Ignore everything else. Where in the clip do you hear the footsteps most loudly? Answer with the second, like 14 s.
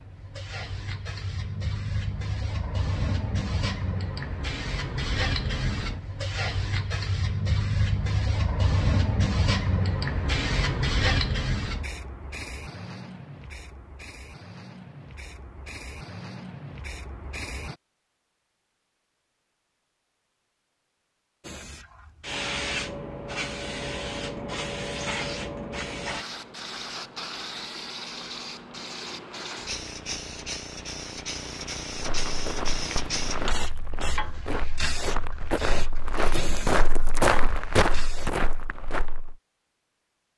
37 s.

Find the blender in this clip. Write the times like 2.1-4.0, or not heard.
not heard.